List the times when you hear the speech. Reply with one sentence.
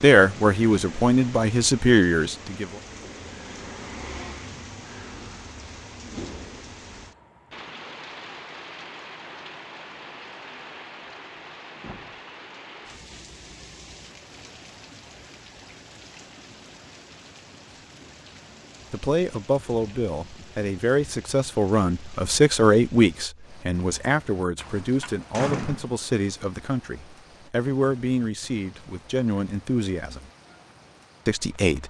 You can hear the speech from 0.0 to 2.6 s, from 18.9 to 30.3 s and from 31.2 to 31.8 s.